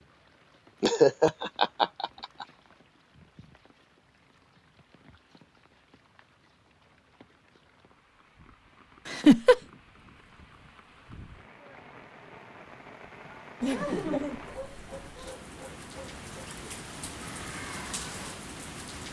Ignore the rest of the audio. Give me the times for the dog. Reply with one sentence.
You can hear the dog from 14.5 to 16.6 s.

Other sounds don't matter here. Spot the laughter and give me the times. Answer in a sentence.
The laughter can be heard from 0.8 to 2.5 s, from 9.1 to 9.6 s and from 13.6 to 15.3 s.